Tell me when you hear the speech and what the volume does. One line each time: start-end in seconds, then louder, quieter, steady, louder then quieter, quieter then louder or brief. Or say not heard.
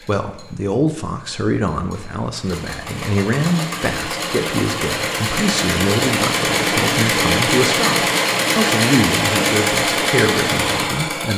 0.1-11.3 steady.